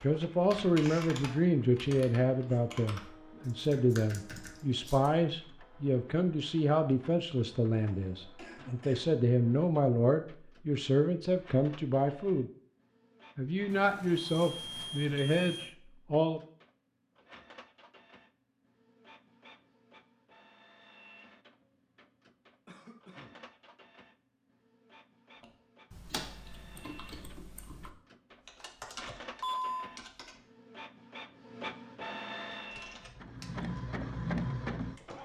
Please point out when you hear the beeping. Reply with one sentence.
The beeping can be heard from 13.7 to 15.8 s and from 29.4 to 29.9 s.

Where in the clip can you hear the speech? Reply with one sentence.
You can hear the speech from 0.0 to 12.5 s and from 13.3 to 16.4 s.